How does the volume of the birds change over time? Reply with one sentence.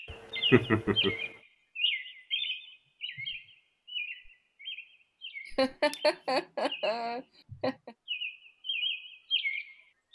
The loudness of the birds goes down, then up.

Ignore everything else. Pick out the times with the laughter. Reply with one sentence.
The laughter can be heard from 0.1 to 1.2 s and from 5.5 to 7.9 s.